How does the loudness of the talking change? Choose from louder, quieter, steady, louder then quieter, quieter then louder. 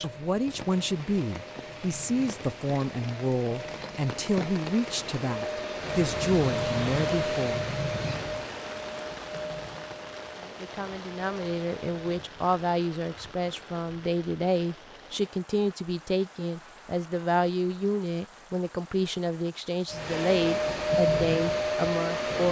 steady.